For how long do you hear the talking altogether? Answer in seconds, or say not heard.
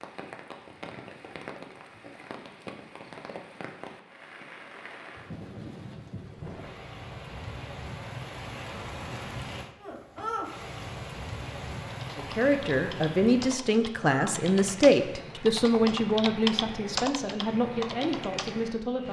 7 s.